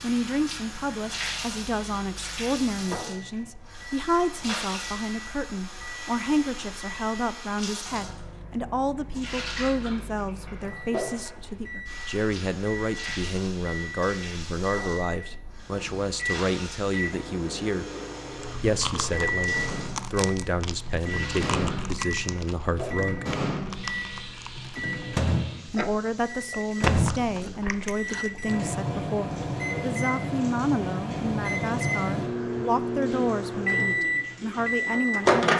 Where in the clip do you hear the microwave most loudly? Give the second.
35 s.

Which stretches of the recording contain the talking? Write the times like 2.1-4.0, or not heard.
0.0-17.9, 18.6-23.3, 25.7-35.5.